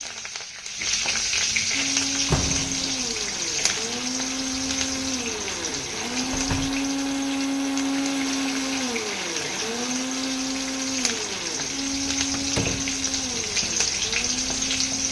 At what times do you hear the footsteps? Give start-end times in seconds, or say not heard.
not heard.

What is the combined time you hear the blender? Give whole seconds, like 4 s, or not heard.
13 s.